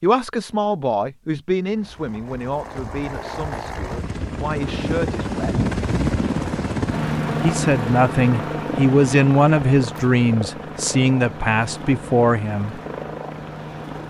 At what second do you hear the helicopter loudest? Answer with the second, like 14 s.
6 s.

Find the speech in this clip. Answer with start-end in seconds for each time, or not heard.
0.0-5.7, 7.4-12.8.